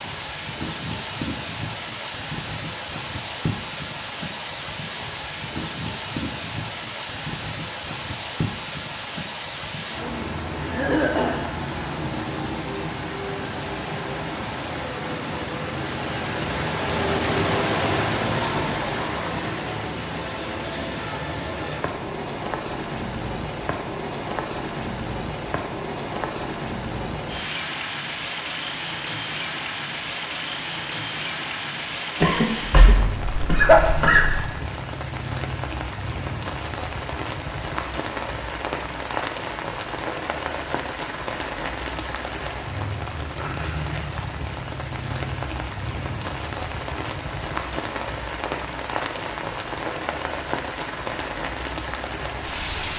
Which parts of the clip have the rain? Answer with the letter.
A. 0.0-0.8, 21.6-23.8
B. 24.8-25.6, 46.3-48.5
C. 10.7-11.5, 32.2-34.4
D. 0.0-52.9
D.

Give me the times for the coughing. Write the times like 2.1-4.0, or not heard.
10.7-11.5, 32.2-34.4.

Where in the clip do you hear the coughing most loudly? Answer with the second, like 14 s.
34 s.